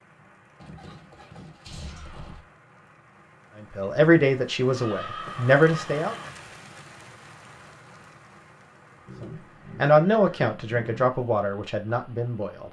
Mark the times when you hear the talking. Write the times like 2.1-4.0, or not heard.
3.6-6.2, 9.2-12.6.